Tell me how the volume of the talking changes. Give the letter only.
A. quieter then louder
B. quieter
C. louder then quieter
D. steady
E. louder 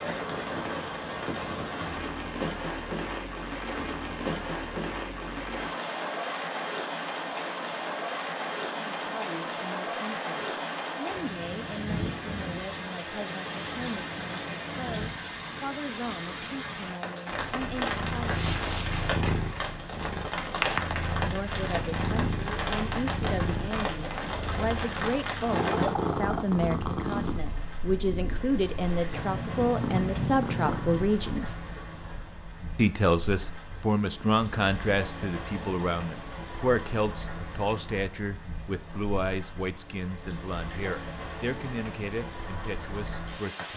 C.